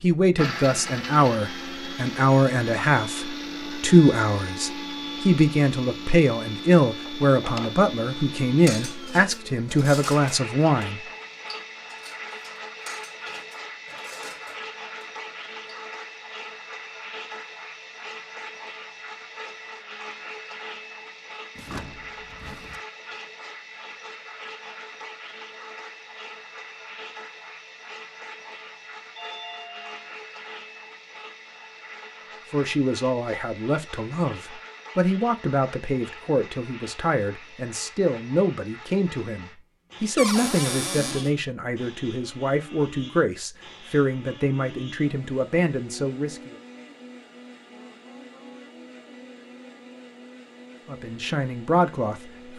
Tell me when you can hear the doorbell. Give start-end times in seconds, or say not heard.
29.1-30.1.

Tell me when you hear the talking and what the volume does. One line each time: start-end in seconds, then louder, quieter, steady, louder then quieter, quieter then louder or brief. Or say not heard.
0.0-11.0 steady
32.5-46.5 steady
50.9-52.3 brief.